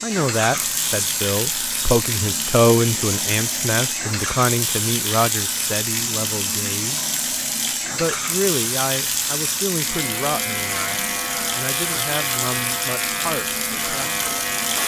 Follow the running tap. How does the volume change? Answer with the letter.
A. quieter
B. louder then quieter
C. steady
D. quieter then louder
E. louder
C.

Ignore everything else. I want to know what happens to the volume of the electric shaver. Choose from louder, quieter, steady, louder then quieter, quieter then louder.
steady.